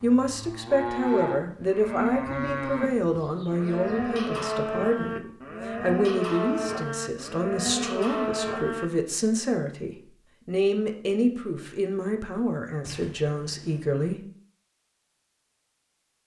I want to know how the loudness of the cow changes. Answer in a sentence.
The loudness of the cow stays about the same.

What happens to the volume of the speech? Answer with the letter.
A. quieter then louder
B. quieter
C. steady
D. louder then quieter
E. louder
C.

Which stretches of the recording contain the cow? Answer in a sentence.
The cow can be heard from 0.0 to 8.9 s.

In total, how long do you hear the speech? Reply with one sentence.
You can hear the speech for 14 seconds altogether.